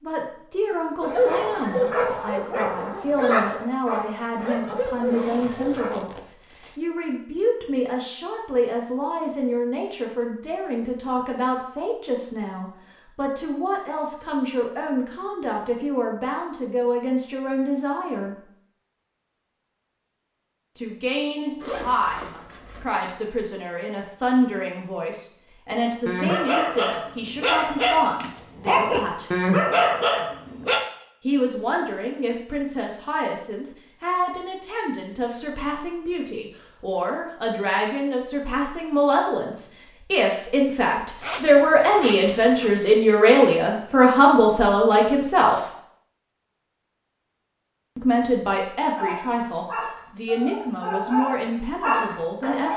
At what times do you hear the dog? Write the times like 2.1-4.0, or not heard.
1.0-6.1, 25.7-30.8, 49.0-52.7.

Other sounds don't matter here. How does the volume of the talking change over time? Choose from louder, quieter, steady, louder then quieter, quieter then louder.
louder.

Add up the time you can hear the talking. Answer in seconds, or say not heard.
46 s.